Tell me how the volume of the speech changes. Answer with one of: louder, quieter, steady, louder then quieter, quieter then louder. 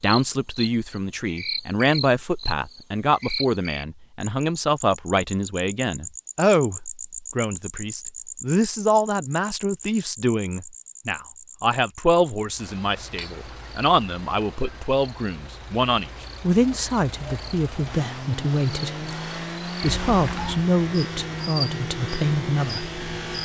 steady.